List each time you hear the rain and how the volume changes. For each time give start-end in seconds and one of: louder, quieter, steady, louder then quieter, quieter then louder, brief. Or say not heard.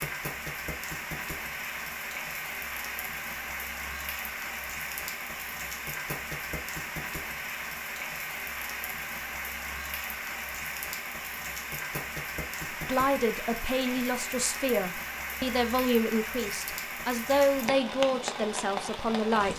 0.0-19.5 steady.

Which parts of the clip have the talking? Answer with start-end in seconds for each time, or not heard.
12.8-19.5.